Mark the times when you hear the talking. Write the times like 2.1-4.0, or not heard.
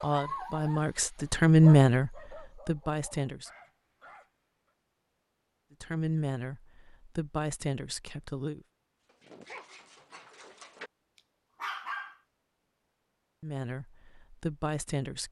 0.0-3.5, 5.8-8.7, 13.4-15.2.